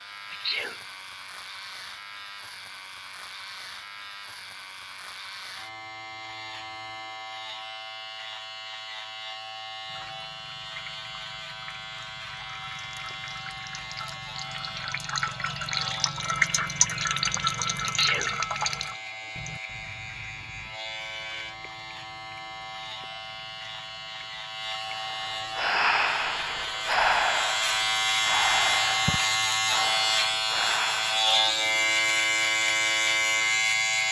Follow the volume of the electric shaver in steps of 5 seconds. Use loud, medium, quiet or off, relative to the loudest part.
quiet, quiet, quiet, quiet, quiet, loud, loud.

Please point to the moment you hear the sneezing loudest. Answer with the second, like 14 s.
18 s.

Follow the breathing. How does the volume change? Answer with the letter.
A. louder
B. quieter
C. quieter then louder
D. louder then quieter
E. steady
B.